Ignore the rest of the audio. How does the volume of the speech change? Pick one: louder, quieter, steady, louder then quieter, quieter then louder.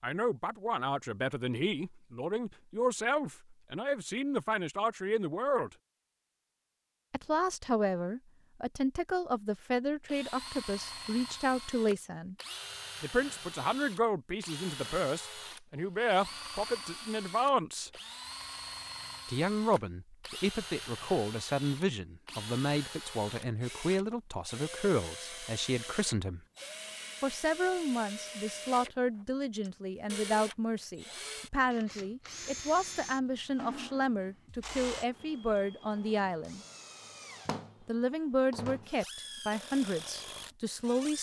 steady.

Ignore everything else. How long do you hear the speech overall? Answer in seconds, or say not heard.
36 s.